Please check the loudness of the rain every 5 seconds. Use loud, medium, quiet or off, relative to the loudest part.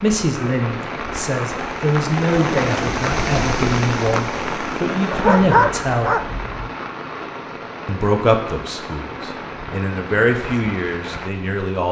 loud, medium, medium.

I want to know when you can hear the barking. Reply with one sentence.
The barking can be heard from 5.1 to 6.7 s.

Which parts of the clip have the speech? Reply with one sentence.
The speech can be heard from 0.0 to 6.3 s and from 7.8 to 11.8 s.